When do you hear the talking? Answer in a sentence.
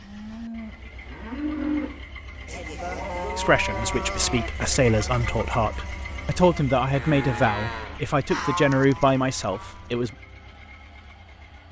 You can hear the talking from 3.4 to 10.1 s.